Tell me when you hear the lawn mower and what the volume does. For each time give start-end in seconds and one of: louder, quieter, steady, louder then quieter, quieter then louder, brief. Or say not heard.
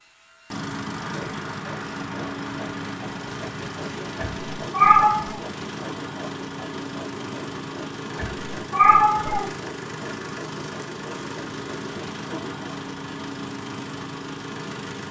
0.0-15.0 steady.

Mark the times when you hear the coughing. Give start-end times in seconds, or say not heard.
not heard.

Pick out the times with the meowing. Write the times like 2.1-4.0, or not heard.
4.2-5.4, 8.2-9.5.